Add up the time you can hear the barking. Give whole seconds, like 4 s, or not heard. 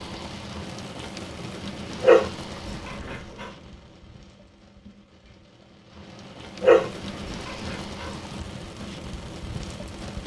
3 s.